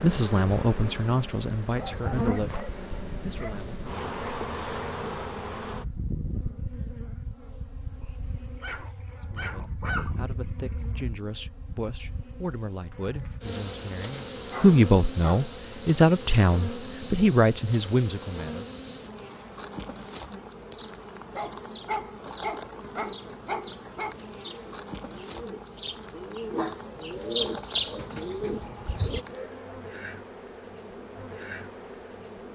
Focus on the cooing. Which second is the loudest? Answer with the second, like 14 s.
28 s.